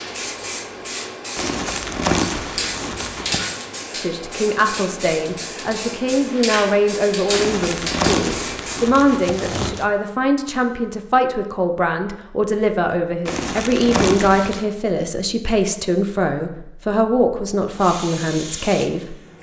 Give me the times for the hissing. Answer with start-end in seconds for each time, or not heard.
0.0-8.8, 17.8-19.3.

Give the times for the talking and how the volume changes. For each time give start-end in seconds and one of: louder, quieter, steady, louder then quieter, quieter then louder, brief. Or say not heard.
4.0-19.1 steady.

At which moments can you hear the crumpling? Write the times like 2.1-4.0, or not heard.
1.4-3.5, 7.3-9.8, 13.2-14.7.